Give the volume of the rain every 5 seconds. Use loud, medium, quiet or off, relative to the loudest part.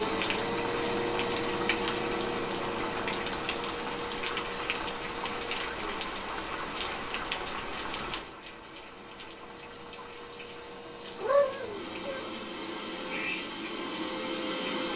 loud, loud, quiet.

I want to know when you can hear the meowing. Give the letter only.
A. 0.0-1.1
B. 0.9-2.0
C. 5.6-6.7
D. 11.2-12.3
D.